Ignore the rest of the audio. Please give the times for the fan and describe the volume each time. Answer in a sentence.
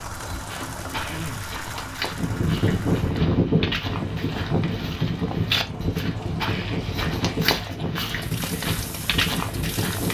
You can hear the fan from 2.1 to 10.0 s, getting quieter.